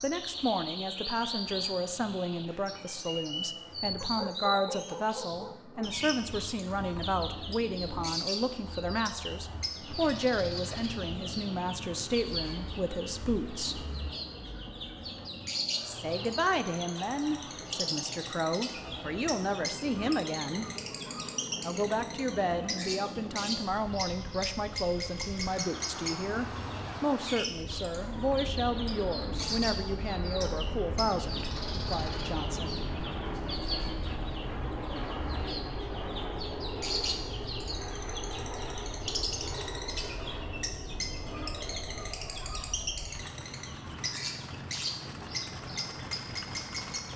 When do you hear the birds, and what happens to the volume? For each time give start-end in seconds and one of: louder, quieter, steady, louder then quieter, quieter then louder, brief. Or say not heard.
0.0-47.1 steady.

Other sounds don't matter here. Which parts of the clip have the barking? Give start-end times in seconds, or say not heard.
4.0-6.0.